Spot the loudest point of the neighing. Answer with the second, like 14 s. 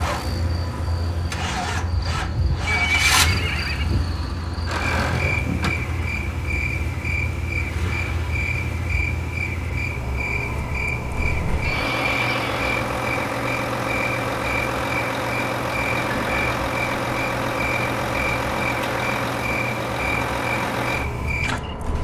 3 s.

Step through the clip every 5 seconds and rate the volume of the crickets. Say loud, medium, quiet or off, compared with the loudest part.
medium, loud, loud, loud, loud.